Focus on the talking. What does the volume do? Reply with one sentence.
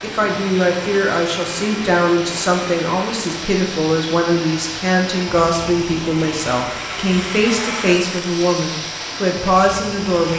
The volume of the talking stays about the same.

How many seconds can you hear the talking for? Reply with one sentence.
You can hear the talking for 10 seconds altogether.